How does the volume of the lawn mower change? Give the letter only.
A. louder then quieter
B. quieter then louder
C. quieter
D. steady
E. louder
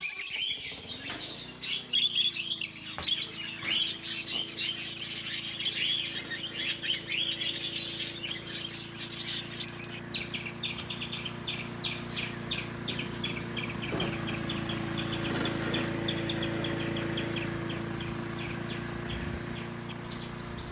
E.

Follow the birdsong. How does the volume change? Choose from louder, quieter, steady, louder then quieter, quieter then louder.
quieter.